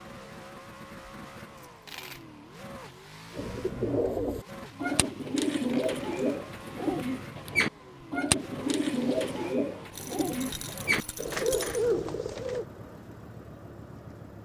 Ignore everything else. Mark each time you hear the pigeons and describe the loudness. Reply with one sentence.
You can hear the pigeons from 3.3 to 12.7 s, at a steady volume.